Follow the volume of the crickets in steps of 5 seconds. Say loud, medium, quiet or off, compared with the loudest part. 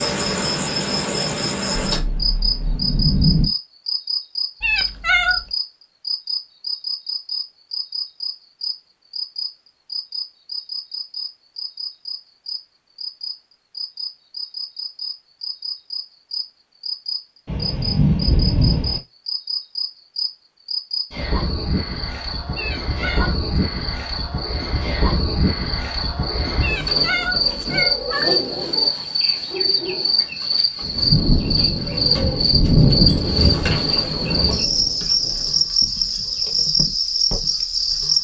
loud, medium, medium, medium, medium, loud, loud, loud.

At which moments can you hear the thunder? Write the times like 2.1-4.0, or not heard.
1.8-3.5, 17.4-19.0, 30.8-35.4.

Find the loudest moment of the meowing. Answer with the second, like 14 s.
5 s.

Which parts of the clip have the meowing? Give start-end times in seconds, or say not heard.
4.6-5.5, 22.6-23.4, 26.6-28.4.